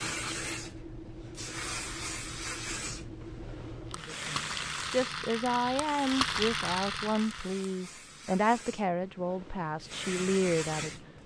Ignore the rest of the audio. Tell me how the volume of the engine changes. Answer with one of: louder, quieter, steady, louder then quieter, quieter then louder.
louder.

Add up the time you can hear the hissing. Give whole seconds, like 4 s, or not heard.
11 s.